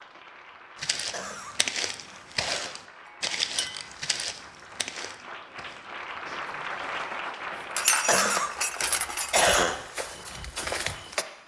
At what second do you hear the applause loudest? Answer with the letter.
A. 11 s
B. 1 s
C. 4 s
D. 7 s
D.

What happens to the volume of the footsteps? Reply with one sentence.
The volume of the footsteps goes down, then up.